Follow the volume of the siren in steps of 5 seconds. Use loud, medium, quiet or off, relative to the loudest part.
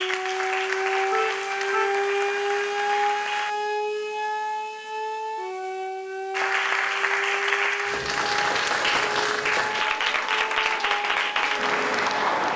loud, medium, medium.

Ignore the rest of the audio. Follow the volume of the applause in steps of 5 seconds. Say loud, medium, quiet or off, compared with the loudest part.
medium, loud, loud.